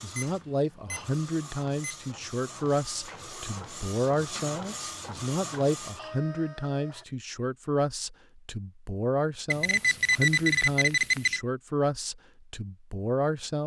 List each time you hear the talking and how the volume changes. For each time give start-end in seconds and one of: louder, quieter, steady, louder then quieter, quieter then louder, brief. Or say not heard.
0.0-13.6 steady.